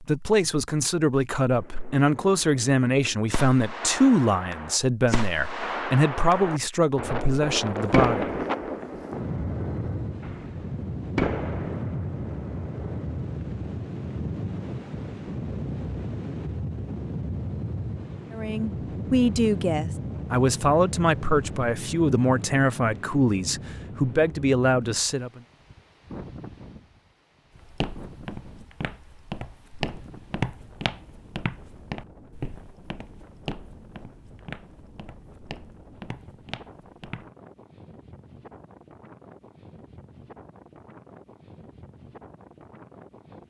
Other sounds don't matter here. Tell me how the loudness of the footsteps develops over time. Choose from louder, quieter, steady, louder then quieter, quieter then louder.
louder then quieter.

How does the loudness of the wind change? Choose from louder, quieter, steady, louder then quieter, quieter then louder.
quieter.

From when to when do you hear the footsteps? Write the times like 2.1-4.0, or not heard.
27.6-37.3.